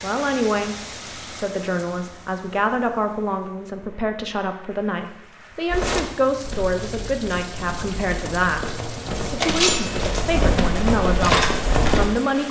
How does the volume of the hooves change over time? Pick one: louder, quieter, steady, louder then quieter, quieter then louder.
louder.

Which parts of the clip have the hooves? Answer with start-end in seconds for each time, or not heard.
5.7-12.1.